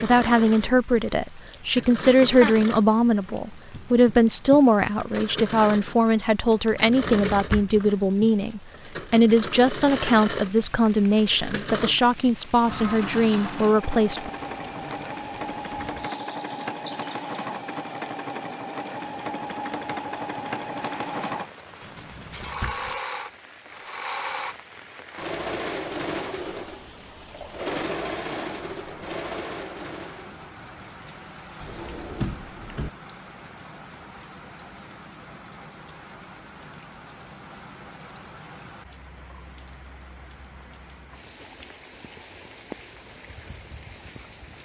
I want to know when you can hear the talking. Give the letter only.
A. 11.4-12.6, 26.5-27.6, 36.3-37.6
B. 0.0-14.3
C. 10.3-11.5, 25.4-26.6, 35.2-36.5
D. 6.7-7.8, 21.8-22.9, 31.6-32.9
B.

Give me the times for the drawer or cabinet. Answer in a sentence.
The drawer or cabinet can be heard from 6.7 to 7.8 s, from 21.8 to 22.9 s and from 31.6 to 32.9 s.